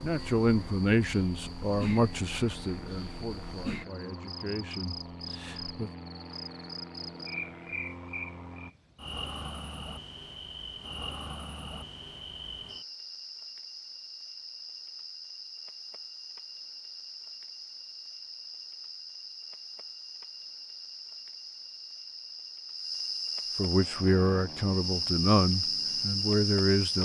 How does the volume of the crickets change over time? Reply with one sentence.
The volume of the crickets goes up.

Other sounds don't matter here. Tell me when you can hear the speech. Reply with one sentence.
The speech can be heard from 0.0 to 5.9 s and from 23.6 to 27.0 s.